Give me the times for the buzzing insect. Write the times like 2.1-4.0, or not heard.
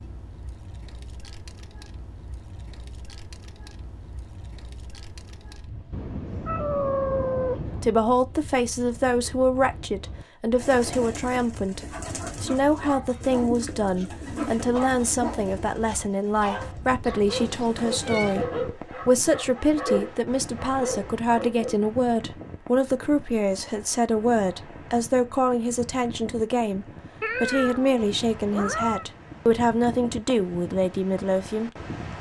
not heard.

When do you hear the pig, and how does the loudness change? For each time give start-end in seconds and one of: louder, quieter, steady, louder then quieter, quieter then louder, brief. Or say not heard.
not heard.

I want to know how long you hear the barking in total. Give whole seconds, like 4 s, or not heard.
10 s.